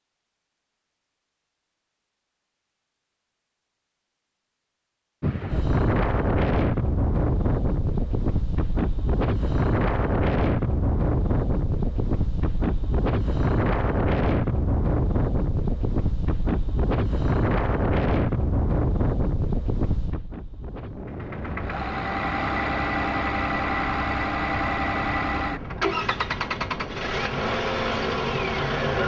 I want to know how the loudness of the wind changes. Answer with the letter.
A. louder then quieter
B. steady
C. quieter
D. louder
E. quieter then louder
C.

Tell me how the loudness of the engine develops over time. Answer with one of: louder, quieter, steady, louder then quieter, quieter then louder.
steady.